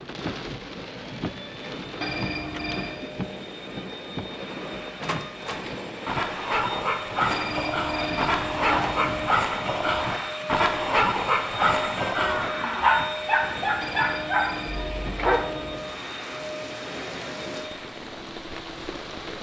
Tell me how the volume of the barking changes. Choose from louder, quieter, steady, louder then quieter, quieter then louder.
steady.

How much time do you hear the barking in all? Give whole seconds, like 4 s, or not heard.
10 s.